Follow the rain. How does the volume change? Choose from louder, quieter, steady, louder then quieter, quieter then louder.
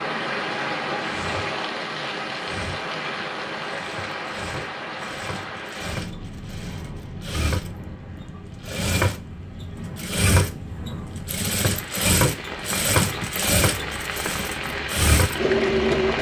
quieter then louder.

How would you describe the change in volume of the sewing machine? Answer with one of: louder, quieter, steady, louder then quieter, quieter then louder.
louder.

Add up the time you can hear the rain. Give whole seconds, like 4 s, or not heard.
16 s.